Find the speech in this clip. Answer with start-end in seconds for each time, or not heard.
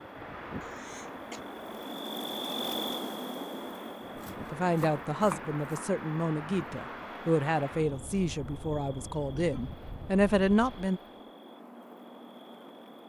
4.5-11.0.